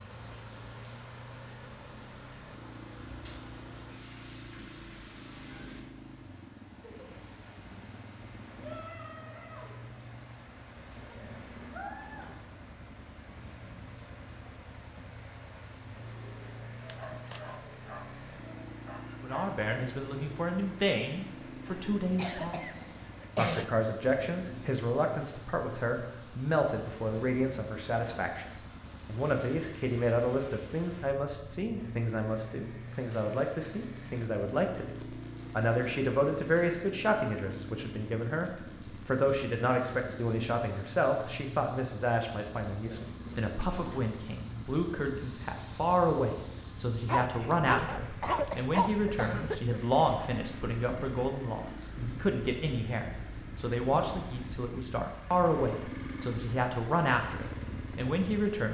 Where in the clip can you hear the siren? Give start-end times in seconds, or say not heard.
not heard.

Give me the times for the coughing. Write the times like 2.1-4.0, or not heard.
16.9-17.6, 21.6-23.6, 47.9-49.8.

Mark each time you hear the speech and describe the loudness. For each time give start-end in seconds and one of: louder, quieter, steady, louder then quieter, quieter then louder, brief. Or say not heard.
19.2-58.6 steady.